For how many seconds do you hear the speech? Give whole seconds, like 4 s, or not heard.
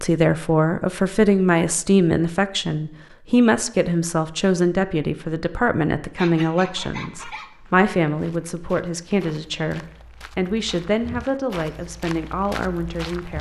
13 s.